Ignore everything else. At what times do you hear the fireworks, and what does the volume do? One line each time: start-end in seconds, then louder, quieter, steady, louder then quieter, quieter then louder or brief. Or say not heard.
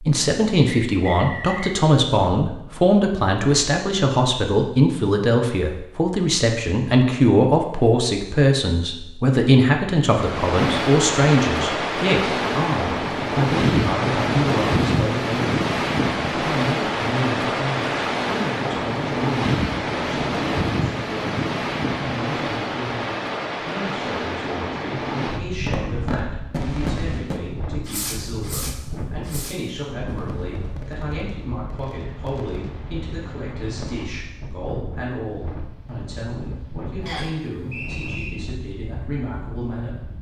25.6-34.0 quieter.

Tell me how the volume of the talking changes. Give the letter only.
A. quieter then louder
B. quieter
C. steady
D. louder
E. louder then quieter
B.